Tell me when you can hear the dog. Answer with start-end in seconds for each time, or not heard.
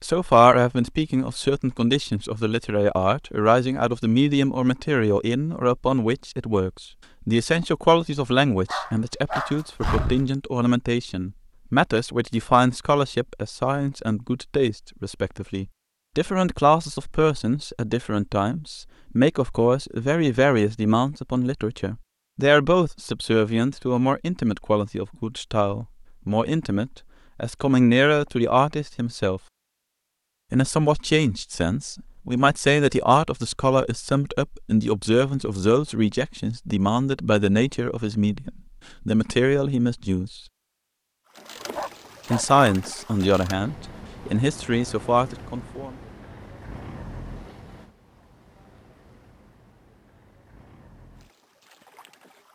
8.7-10.3, 41.5-42.6.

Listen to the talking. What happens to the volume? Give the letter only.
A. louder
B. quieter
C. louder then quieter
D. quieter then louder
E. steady
E.